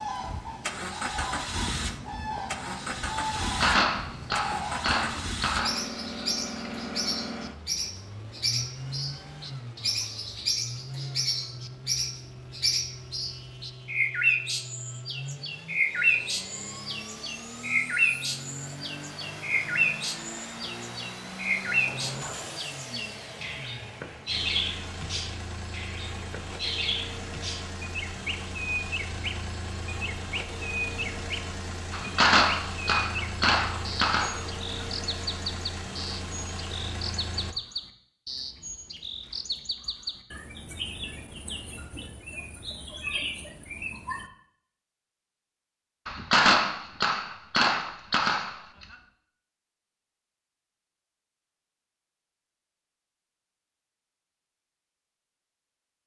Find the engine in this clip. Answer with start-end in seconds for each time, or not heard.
0.0-37.5.